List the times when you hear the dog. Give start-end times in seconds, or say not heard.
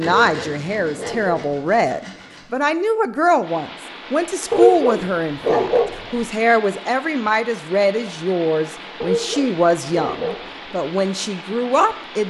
0.2-1.6, 4.5-6.2, 9.0-10.4.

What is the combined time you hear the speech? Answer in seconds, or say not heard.
12 s.